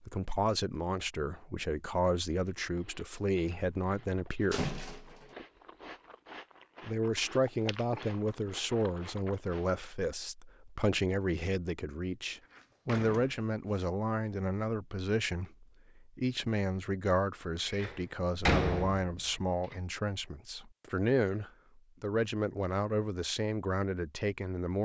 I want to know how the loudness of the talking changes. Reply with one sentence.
The volume of the talking stays about the same.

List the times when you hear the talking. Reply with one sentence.
The talking can be heard from 0.1 to 4.7 s and from 6.8 to 24.8 s.